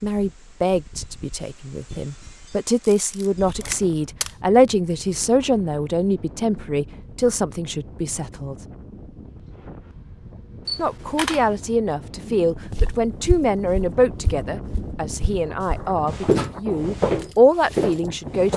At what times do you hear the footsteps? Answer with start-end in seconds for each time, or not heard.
12.7-18.5.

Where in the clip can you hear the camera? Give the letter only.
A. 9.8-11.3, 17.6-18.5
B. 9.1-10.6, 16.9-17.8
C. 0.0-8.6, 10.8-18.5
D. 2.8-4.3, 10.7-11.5
D.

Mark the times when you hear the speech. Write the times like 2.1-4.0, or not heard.
0.0-8.6, 10.8-18.5.